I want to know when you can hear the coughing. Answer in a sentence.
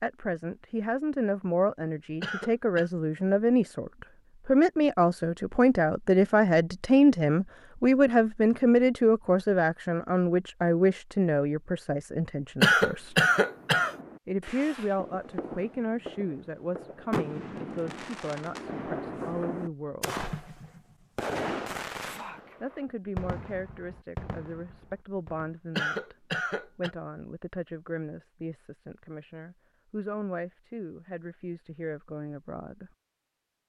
You can hear the coughing from 2.2 to 2.9 s, from 12.6 to 13.9 s and from 25.8 to 26.9 s.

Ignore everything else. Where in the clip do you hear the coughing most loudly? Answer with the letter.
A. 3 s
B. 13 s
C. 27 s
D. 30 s
B.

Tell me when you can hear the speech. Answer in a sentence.
You can hear the speech from 0.0 to 13.2 s, from 14.2 to 20.2 s and from 22.6 to 32.9 s.